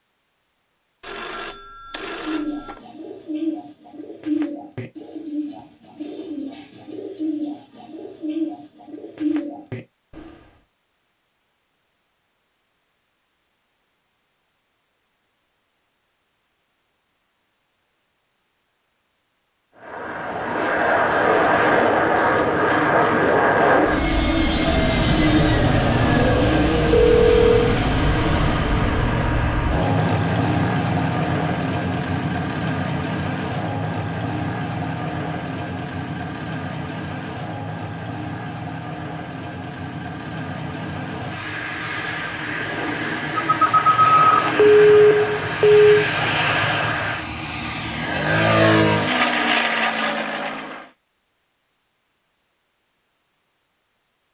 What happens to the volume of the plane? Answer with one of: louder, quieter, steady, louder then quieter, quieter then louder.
quieter then louder.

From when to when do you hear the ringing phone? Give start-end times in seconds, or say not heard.
1.0-2.8, 26.9-27.8, 43.4-45.9.